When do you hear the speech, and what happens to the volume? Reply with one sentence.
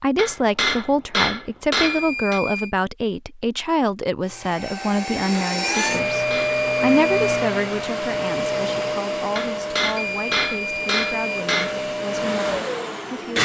The speech can be heard from 0.0 to 13.4 s, getting quieter.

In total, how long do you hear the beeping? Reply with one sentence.
You can hear the beeping for 4 seconds altogether.